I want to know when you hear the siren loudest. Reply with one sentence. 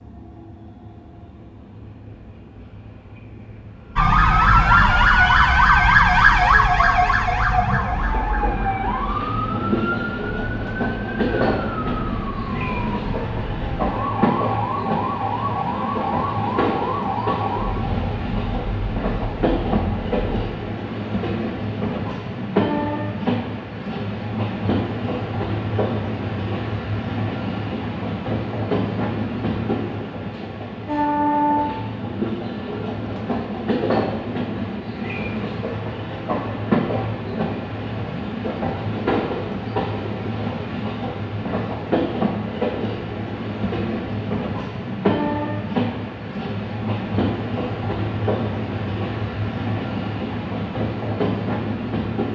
The volume of the siren peaks at 6 seconds.